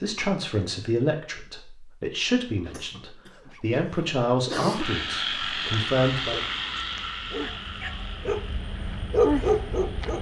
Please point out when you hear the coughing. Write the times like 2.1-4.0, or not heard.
2.6-4.9.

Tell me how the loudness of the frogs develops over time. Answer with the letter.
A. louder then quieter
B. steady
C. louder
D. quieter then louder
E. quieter
E.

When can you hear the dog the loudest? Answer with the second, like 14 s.
9 s.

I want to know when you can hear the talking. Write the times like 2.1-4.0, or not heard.
0.0-6.5.